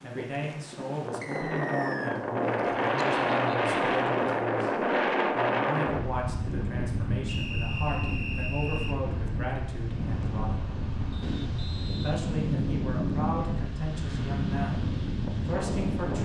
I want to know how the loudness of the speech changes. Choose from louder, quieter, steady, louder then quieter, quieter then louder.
steady.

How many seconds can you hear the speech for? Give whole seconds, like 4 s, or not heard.
15 s.